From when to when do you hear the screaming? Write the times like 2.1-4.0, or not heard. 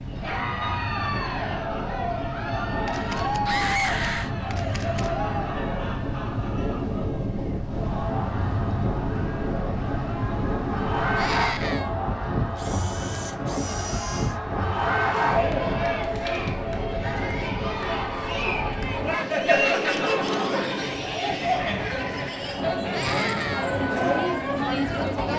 3.5-4.3, 11.2-11.9, 22.9-23.9.